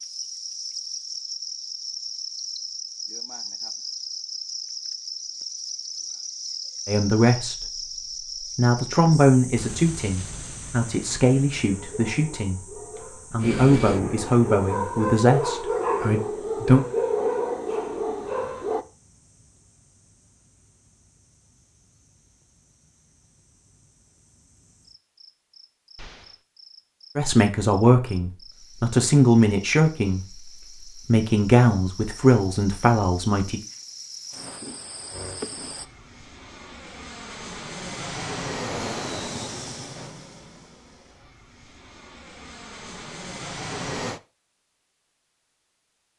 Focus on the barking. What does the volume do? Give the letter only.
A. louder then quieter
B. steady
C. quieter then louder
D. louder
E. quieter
D.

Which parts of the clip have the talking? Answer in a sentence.
The talking can be heard from 6.8 to 16.9 s and from 27.1 to 33.6 s.